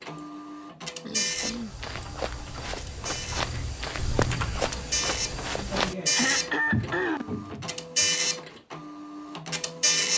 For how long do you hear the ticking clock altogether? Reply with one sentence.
You can't hear the ticking clock here.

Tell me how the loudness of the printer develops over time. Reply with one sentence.
The volume of the printer goes down, then up.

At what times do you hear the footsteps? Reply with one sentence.
The footsteps can be heard from 1.3 to 8.1 s.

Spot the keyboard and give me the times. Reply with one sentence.
You can hear the keyboard from 1.9 to 4.7 s.